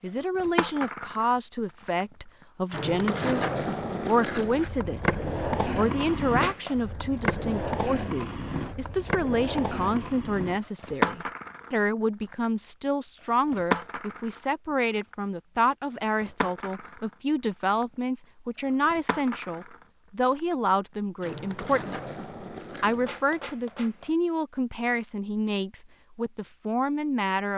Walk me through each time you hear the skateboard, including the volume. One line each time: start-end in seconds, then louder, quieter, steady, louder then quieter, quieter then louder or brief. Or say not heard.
0.1-24.1 quieter.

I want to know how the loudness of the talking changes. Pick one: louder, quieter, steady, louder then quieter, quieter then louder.
steady.